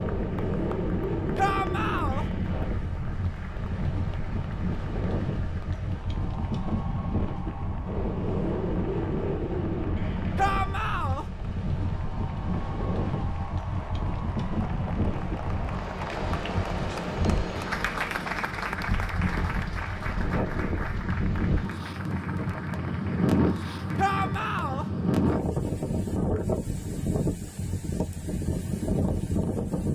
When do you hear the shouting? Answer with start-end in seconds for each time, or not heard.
1.4-2.2, 10.3-11.2, 23.9-24.9.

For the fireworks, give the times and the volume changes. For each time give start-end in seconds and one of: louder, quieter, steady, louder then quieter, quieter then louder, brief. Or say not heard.
not heard.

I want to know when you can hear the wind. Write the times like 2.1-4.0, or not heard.
0.0-29.9.